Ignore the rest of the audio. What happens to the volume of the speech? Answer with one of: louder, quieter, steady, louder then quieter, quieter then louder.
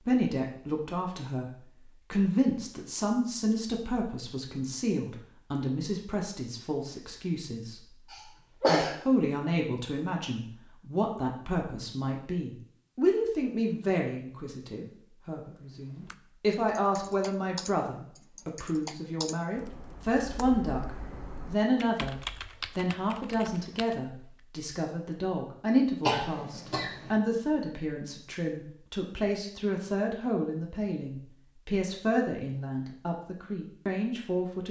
steady.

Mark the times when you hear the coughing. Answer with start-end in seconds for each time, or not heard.
8.1-8.9, 26.1-27.1.